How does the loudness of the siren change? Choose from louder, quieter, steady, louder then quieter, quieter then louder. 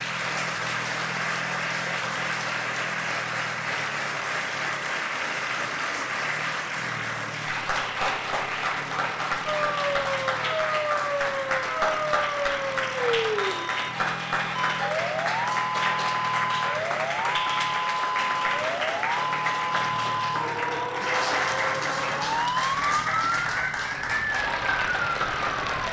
steady.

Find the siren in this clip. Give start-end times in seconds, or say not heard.
9.4-25.8.